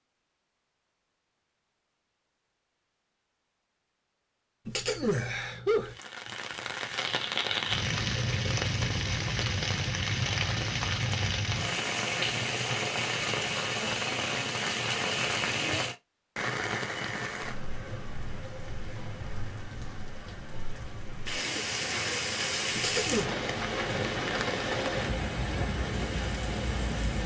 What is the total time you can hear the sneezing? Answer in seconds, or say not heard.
2 s.